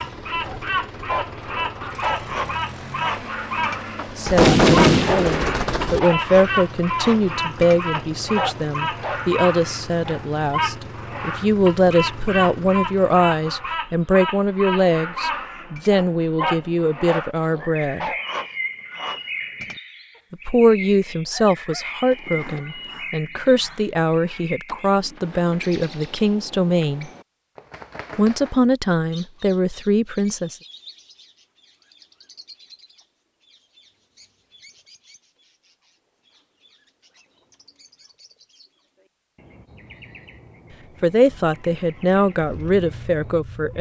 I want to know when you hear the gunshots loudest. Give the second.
5 s.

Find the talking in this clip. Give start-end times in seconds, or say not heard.
4.2-18.1, 20.3-27.1, 28.1-30.6, 41.0-43.7.